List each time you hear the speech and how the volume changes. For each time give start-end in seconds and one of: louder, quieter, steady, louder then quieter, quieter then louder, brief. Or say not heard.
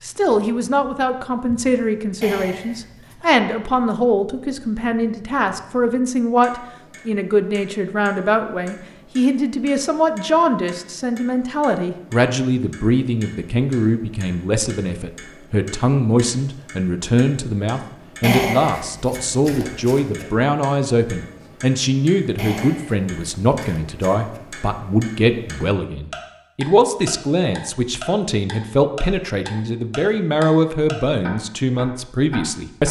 0.0-32.8 steady.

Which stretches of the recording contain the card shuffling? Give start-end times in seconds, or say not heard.
2.2-3.1, 18.2-20.2, 22.4-24.4.